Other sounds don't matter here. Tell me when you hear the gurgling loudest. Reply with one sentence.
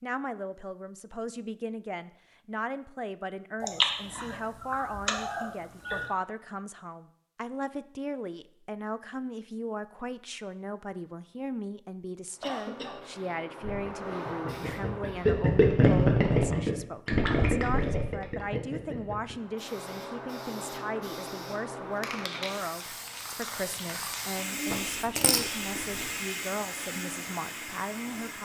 The loudest moment of the gurgling is at 16 seconds.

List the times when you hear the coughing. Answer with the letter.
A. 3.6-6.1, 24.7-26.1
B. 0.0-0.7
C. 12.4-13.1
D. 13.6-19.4
C.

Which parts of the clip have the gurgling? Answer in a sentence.
The gurgling can be heard from 13.6 to 19.4 s.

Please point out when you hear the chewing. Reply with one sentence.
The chewing can be heard from 3.6 to 6.1 s and from 24.7 to 26.1 s.